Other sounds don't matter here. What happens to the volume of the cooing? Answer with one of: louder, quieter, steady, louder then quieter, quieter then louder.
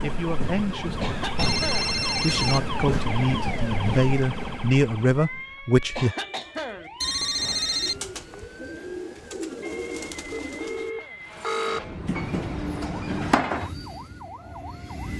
louder.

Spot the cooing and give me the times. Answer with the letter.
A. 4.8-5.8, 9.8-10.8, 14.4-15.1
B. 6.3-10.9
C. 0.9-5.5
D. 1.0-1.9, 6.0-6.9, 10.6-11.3
B.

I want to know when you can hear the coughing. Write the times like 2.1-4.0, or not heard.
1.0-1.9, 6.0-6.9, 10.6-11.3.